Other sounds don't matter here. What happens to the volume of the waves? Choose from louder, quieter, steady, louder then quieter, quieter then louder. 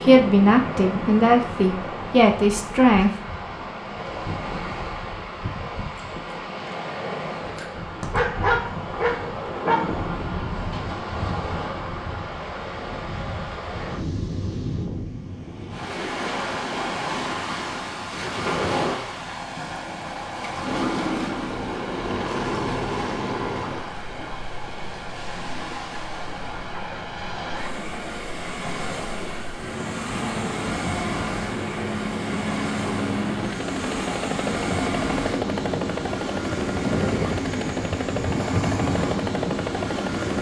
steady.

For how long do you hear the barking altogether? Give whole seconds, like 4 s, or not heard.
2 s.